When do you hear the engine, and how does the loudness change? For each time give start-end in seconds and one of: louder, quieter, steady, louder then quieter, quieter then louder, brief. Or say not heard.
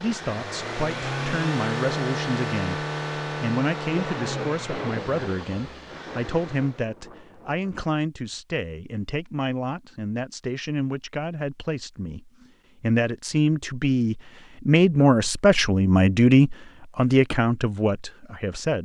0.0-6.8 quieter.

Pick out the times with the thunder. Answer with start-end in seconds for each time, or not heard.
4.0-7.8.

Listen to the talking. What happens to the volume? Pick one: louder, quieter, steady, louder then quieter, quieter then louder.
louder.